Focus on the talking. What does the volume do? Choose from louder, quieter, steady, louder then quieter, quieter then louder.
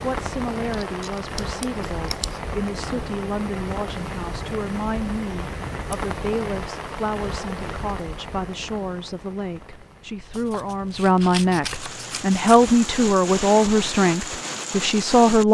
louder.